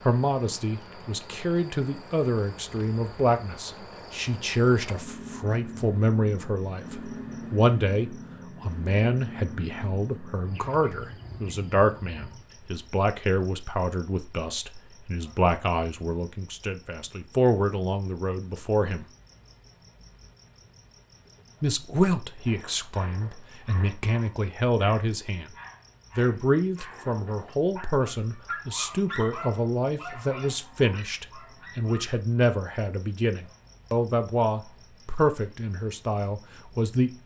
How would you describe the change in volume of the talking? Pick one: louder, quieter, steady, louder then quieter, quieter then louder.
steady.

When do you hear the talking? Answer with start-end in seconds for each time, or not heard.
0.1-19.1, 21.6-25.5, 26.1-37.1.